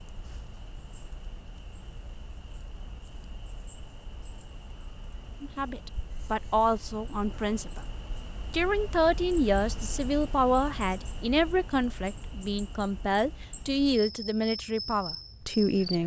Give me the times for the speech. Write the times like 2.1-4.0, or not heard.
5.4-7.8, 8.5-16.0.